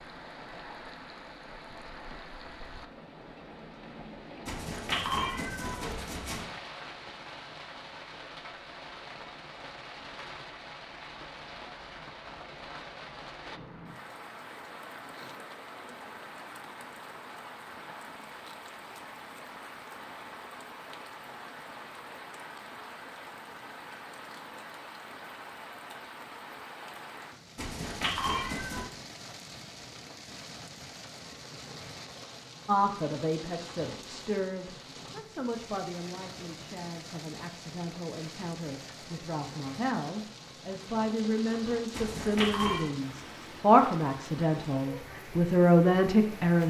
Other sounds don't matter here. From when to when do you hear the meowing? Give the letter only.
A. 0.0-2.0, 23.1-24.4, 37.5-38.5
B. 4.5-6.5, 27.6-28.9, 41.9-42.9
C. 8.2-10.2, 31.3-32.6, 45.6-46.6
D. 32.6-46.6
B.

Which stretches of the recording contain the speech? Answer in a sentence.
The speech can be heard from 32.6 to 46.6 s.